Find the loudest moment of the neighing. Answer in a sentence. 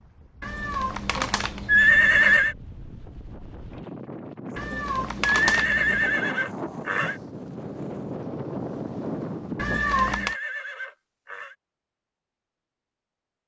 The loudest moment of the neighing is at 2 seconds.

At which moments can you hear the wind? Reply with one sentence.
The wind can be heard from 0.0 to 9.8 s.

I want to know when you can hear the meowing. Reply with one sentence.
The meowing can be heard from 0.4 to 2.4 s, from 4.5 to 6.2 s and from 9.6 to 10.3 s.